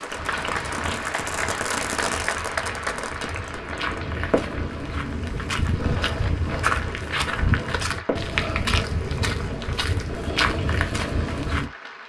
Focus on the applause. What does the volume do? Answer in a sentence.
The volume of the applause goes down.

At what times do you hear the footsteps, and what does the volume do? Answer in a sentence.
You can hear the footsteps from 0.1 to 11.7 s, getting louder.